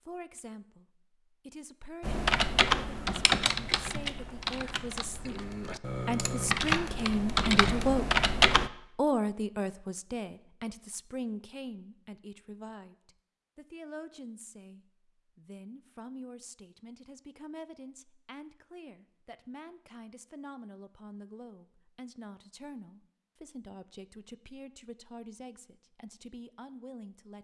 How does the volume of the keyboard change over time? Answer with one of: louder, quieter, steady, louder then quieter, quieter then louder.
quieter then louder.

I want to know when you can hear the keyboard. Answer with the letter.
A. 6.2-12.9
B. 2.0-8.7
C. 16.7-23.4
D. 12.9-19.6
B.